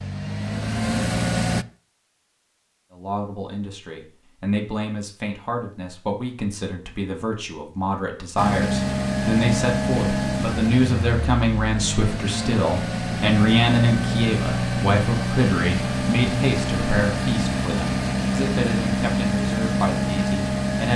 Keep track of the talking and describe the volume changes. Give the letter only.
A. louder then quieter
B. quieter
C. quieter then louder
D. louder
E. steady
A.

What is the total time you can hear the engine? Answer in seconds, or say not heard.
14 s.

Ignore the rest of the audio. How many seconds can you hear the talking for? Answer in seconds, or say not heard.
18 s.